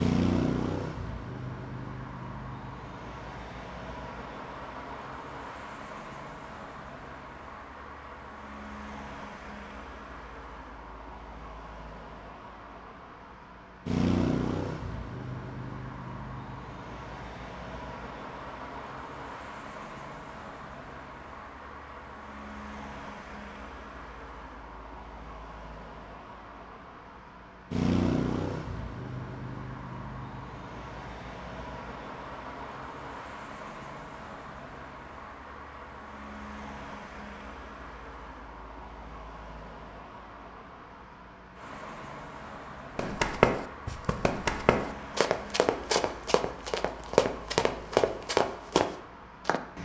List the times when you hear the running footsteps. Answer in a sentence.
You can hear the running footsteps from 43.0 to 49.6 s.